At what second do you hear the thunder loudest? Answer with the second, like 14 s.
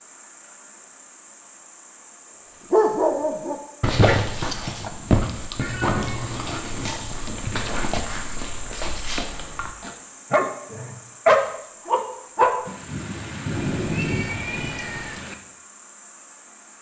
14 s.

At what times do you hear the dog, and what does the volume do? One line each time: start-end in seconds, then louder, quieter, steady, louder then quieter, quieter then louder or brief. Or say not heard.
2.7-12.6 quieter then louder.